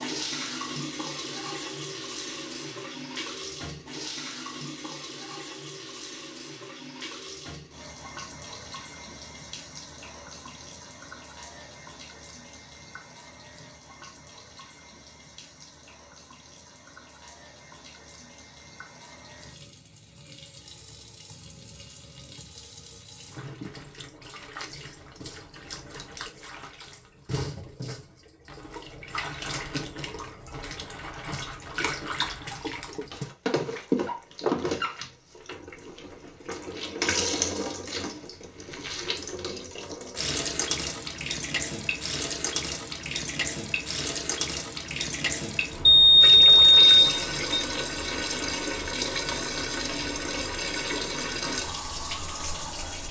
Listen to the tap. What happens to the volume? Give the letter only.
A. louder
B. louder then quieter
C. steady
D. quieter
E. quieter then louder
E.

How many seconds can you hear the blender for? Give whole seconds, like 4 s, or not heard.
not heard.